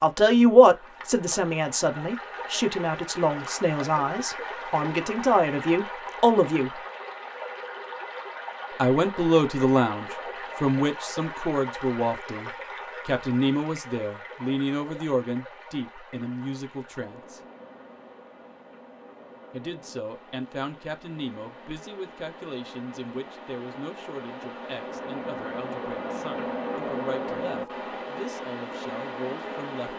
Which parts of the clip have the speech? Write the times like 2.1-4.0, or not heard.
0.0-6.8, 8.8-17.4, 19.5-29.9.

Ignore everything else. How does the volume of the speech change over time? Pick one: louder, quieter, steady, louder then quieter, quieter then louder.
quieter.